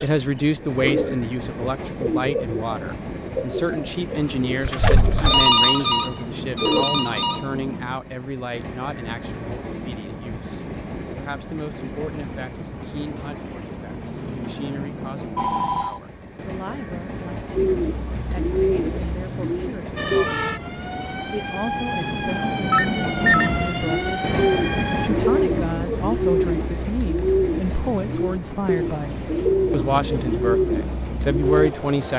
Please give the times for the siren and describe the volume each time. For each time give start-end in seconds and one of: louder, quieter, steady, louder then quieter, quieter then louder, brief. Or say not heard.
19.9-25.1 steady.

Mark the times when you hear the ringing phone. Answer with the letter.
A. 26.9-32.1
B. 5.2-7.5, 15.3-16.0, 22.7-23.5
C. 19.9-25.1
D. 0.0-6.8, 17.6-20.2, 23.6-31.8
B.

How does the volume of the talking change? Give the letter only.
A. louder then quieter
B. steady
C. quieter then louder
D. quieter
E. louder
C.